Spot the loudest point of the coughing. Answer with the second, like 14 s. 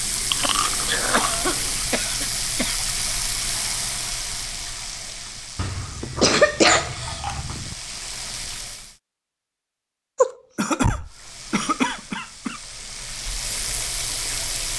7 s.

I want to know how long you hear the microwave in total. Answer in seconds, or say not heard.
not heard.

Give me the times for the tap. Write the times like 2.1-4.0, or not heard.
0.0-8.9, 11.1-14.7.